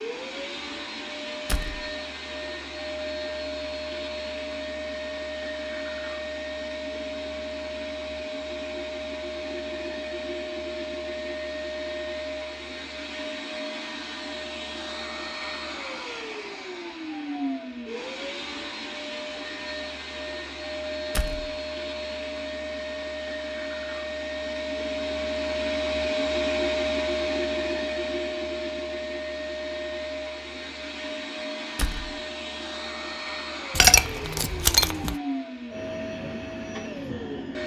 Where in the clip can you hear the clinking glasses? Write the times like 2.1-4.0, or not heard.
33.7-35.1.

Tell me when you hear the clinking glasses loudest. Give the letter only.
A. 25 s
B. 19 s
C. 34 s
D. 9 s
C.